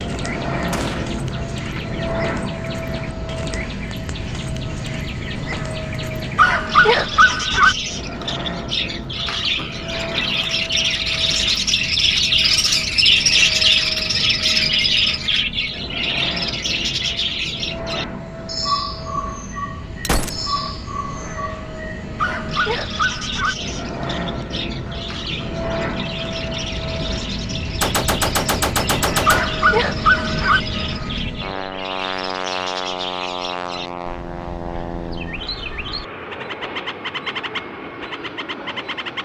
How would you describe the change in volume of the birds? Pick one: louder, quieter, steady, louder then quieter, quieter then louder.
louder then quieter.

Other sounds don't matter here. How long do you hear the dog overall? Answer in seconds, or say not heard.
4 s.